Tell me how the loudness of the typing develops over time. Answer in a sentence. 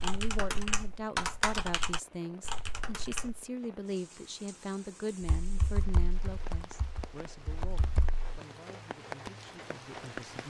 The volume of the typing goes down.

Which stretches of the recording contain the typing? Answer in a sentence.
You can hear the typing from 0.0 to 3.5 s and from 5.2 to 8.4 s.